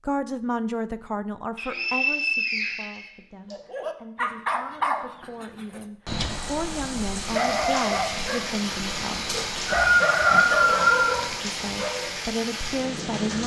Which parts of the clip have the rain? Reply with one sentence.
You can hear the rain from 6.2 to 13.4 s.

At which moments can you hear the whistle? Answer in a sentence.
The whistle can be heard from 1.6 to 3.5 s and from 9.2 to 11.2 s.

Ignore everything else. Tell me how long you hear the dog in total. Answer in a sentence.
You can hear the dog for 9 seconds altogether.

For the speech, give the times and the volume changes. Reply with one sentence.
The speech can be heard from 0.0 to 9.3 s, getting quieter then louder; and briefly from 11.4 to 13.4 s.